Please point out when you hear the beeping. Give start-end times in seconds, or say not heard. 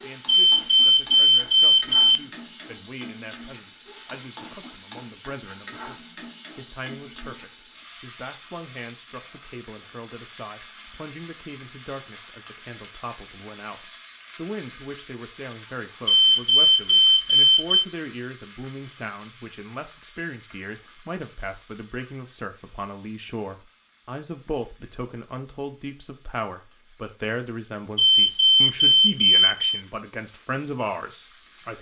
0.2-2.2, 16.1-17.9, 27.9-29.8.